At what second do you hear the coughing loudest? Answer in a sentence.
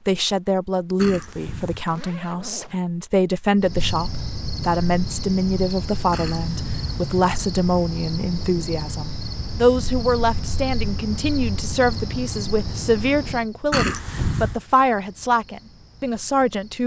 The loudest moment of the coughing is at 14 seconds.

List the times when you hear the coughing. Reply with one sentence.
The coughing can be heard from 0.9 to 1.9 s, from 6.1 to 7.1 s and from 13.7 to 14.6 s.